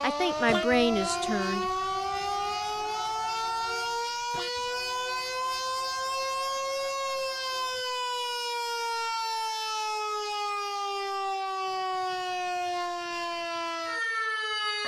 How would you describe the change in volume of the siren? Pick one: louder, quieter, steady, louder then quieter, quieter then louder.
steady.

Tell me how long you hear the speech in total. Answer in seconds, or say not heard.
2 s.